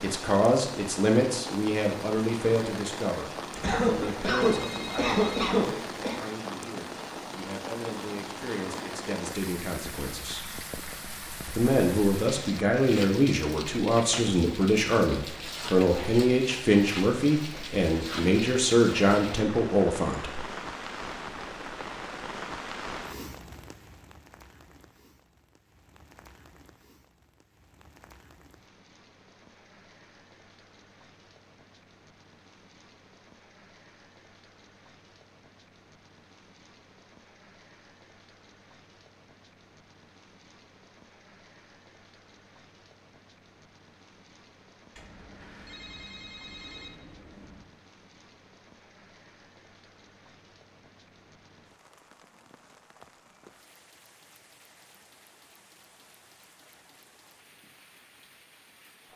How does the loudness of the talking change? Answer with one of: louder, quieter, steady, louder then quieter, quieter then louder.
quieter then louder.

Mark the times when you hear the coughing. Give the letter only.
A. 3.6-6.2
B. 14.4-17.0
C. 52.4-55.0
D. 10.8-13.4
A.